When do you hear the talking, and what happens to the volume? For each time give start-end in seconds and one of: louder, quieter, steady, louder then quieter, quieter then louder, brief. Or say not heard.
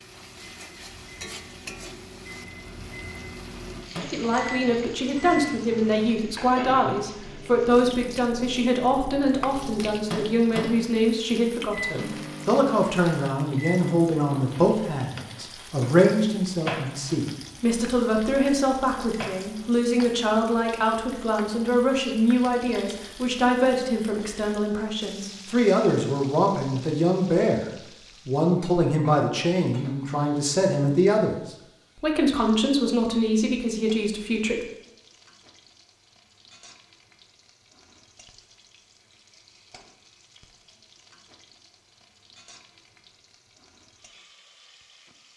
4.1-31.4 steady
31.9-34.6 brief.